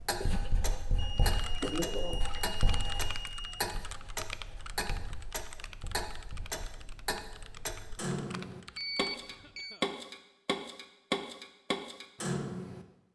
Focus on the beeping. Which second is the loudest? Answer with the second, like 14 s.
9 s.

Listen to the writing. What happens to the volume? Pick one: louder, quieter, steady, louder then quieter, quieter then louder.
quieter.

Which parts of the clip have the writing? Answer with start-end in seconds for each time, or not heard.
0.1-7.0.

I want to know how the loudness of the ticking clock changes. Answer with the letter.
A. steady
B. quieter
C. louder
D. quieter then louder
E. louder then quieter
C.